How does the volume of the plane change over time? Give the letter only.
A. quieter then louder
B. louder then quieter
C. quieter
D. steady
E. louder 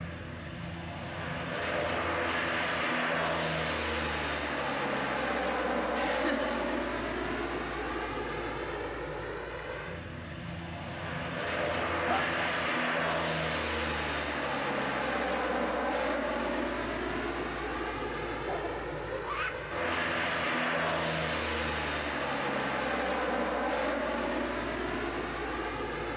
D.